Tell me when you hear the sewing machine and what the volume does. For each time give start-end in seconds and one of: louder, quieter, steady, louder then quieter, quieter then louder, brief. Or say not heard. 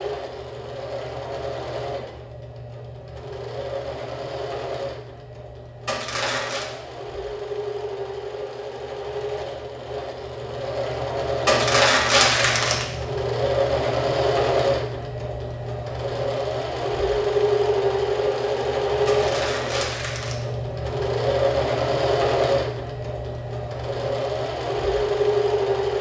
0.0-25.9 louder.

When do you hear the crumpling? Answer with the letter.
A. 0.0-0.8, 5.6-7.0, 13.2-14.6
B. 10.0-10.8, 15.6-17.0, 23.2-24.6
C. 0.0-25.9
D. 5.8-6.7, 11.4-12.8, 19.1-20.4
D.